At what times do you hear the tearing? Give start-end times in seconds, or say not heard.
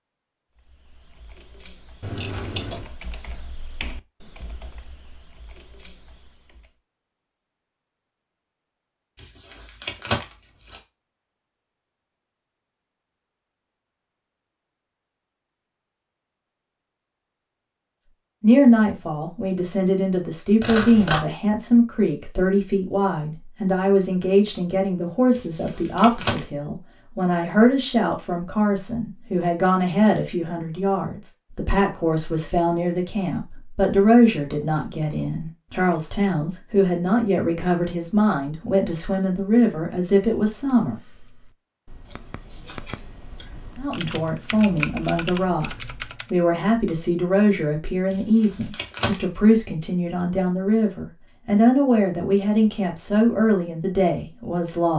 9.2-10.8, 25.4-26.4, 48.1-49.2.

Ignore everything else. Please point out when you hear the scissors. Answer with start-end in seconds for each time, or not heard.
2.0-2.9, 20.6-21.2, 42.0-43.5.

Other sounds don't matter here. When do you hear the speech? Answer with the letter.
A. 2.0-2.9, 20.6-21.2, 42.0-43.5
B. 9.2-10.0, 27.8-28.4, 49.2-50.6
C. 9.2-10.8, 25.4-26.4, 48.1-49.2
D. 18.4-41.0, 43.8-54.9
D.